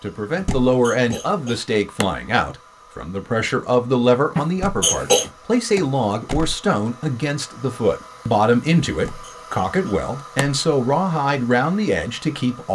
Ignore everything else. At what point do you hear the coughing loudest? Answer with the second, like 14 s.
5 s.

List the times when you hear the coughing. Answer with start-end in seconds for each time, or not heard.
0.3-2.0, 4.3-5.3, 9.2-10.4.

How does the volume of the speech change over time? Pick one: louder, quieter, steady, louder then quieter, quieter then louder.
steady.